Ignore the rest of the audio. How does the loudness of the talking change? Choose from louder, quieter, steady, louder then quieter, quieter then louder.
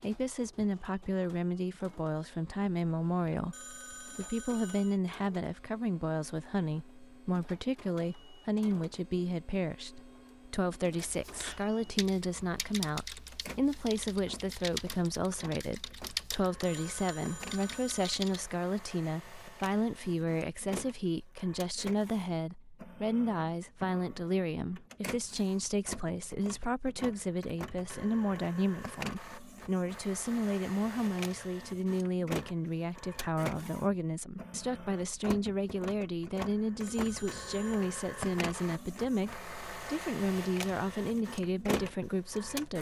steady.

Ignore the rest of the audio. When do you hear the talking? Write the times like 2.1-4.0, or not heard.
0.0-42.7.